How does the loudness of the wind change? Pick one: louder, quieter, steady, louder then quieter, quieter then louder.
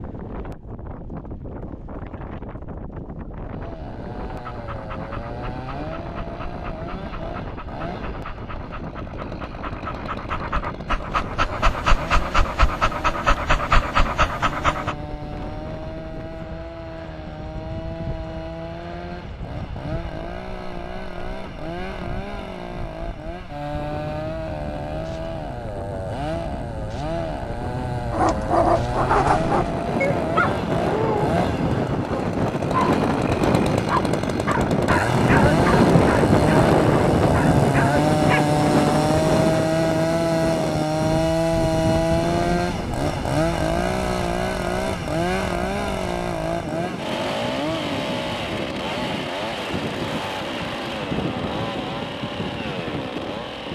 louder then quieter.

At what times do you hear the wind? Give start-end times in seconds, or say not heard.
0.0-53.6.